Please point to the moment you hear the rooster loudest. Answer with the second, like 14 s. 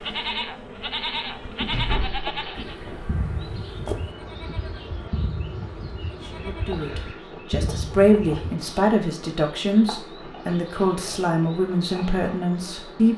4 s.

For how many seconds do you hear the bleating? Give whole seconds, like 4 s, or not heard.
8 s.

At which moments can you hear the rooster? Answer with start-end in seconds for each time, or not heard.
2.5-4.2.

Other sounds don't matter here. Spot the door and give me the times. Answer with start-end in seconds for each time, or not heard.
1.6-2.8.